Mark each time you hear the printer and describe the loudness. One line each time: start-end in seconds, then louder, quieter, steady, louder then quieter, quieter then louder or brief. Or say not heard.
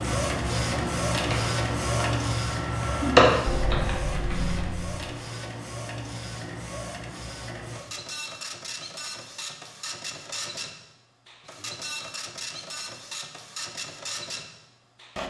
0.0-15.2 quieter.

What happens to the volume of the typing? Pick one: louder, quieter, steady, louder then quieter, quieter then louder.
louder then quieter.